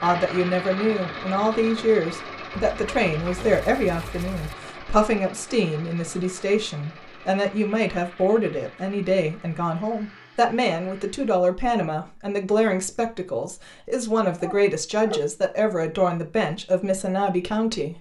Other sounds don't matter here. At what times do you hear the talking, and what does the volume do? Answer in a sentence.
You can hear the talking from 0.0 to 17.9 s, at a steady volume.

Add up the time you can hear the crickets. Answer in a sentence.
You can't hear the crickets here.